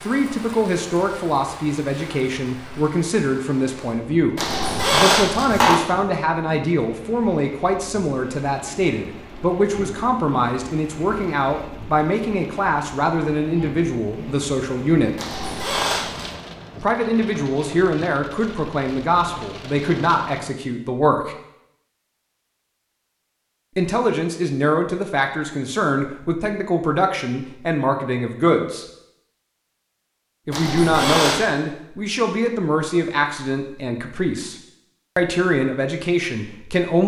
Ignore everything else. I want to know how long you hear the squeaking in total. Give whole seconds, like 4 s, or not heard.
4 s.